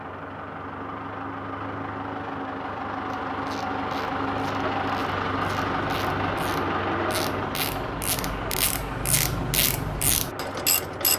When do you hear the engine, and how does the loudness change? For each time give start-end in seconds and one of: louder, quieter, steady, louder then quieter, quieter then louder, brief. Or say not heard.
0.0-11.1 louder then quieter.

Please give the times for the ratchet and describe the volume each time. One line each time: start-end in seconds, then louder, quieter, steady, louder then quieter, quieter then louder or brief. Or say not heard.
3.1-11.1 louder.